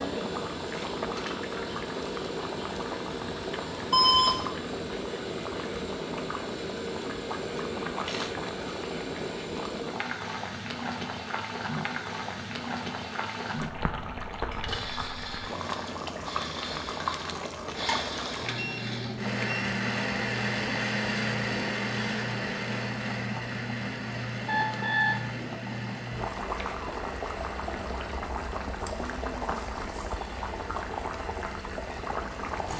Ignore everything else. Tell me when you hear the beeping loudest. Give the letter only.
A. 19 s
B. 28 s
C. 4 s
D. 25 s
C.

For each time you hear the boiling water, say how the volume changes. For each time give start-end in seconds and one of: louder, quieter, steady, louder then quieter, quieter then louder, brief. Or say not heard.
0.0-32.7 steady.